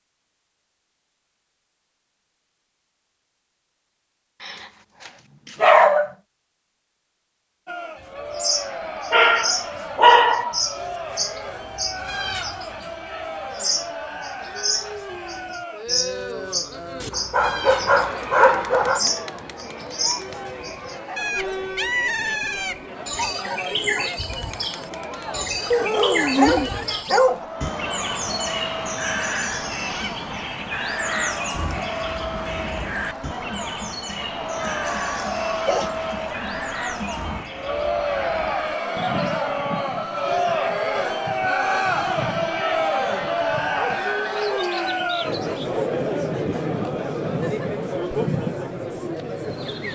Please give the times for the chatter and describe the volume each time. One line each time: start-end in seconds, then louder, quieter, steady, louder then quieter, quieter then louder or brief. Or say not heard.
7.7-49.8 louder.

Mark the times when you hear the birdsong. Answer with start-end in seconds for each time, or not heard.
8.2-49.8.